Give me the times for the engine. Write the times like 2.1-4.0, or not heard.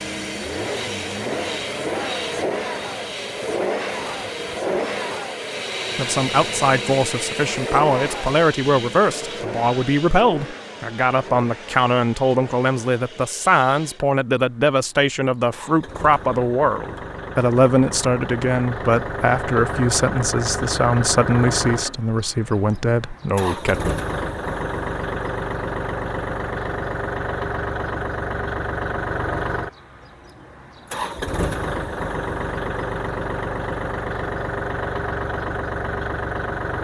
0.0-36.7.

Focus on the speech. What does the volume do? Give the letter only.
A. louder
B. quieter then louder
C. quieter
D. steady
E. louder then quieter
D.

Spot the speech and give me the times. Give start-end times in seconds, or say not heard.
6.0-23.8.